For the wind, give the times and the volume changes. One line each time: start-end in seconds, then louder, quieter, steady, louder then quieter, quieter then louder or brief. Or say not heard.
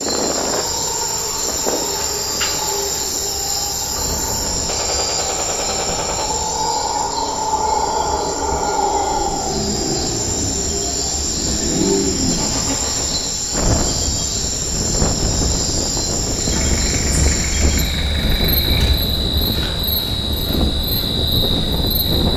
0.0-22.3 quieter then louder.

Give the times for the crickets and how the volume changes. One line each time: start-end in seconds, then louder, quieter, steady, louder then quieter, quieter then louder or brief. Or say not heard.
0.0-22.3 steady.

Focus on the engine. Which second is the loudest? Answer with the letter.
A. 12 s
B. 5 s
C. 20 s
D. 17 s
A.